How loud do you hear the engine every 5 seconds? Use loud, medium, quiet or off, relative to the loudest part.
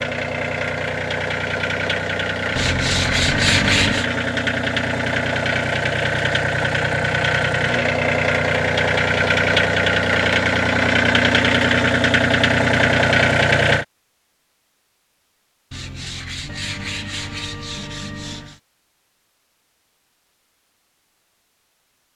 medium, loud, loud, off, off.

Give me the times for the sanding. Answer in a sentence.
You can hear the sanding from 2.5 to 4.0 s and from 15.7 to 18.6 s.